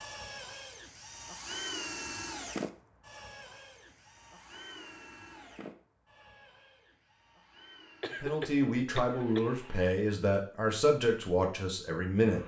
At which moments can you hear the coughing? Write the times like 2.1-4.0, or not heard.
8.0-9.5.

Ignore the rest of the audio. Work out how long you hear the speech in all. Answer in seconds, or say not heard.
4 s.